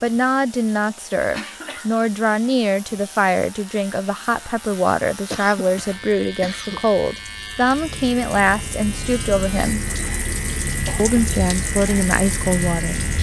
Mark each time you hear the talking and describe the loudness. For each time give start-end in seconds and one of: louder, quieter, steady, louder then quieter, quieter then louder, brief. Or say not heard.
0.0-9.8 steady
10.9-12.9 brief.